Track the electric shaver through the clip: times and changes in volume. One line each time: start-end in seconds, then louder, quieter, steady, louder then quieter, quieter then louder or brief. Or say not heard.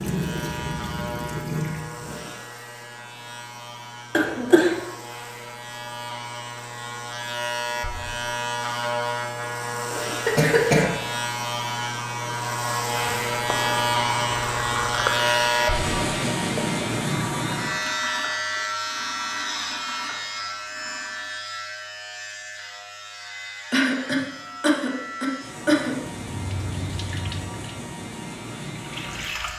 0.0-29.5 louder then quieter.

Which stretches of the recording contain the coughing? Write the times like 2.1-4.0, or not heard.
4.1-4.8, 10.2-10.9, 23.7-25.9.